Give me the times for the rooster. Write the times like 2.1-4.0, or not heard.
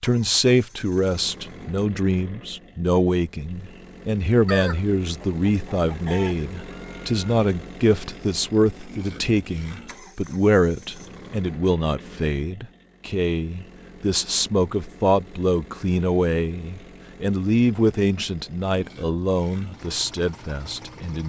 4.5-7.2.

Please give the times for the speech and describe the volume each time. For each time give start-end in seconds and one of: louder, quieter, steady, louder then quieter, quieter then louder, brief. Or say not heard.
0.0-21.2 steady.